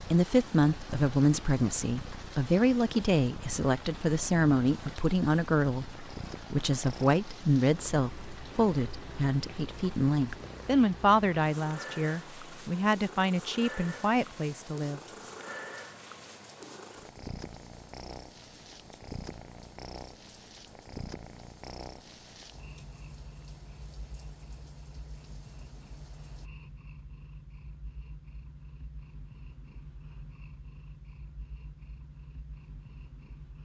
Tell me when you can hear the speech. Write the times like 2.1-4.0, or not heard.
0.0-15.0.